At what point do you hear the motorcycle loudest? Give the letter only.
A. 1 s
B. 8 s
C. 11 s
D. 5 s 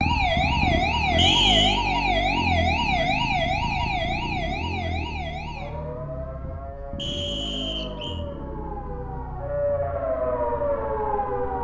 A.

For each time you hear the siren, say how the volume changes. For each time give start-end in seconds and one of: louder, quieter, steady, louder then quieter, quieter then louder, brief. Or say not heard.
0.0-11.6 quieter then louder.